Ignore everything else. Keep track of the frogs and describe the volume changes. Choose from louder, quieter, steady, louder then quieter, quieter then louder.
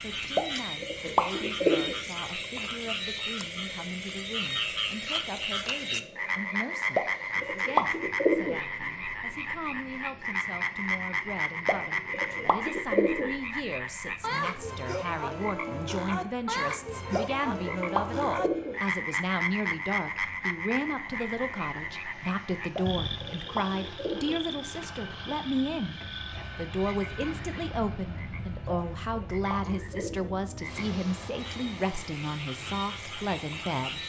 quieter.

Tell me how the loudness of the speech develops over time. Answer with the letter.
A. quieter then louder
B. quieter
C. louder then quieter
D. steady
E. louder
E.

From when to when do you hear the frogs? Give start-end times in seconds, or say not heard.
0.0-34.0.